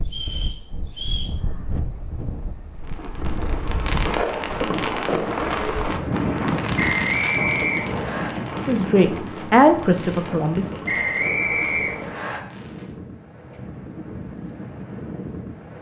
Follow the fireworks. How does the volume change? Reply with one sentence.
The volume of the fireworks goes down.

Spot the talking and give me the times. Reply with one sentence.
You can hear the talking from 8.7 to 10.7 s.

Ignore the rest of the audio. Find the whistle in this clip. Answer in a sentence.
The whistle can be heard from 0.1 to 1.4 s, from 6.8 to 8.3 s and from 10.8 to 12.4 s.